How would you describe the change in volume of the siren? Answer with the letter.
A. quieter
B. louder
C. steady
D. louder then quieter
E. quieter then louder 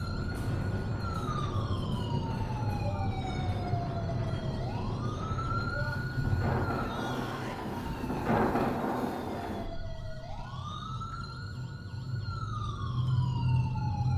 E.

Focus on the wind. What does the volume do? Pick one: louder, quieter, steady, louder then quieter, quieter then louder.
louder.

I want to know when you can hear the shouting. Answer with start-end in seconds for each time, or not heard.
6.8-7.5.